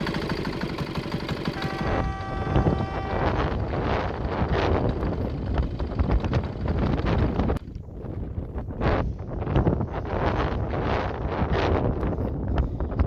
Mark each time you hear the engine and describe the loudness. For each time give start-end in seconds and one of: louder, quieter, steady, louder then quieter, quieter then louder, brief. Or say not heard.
0.0-7.8 quieter.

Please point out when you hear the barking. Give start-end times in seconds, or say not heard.
not heard.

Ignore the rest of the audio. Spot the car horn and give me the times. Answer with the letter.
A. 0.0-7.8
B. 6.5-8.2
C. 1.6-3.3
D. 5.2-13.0
C.